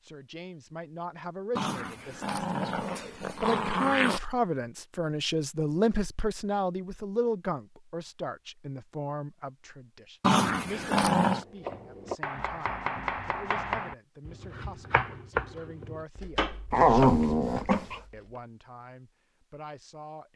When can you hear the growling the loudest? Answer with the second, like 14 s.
17 s.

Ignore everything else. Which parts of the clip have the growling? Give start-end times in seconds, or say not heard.
1.6-4.2, 10.2-11.4, 16.7-18.0.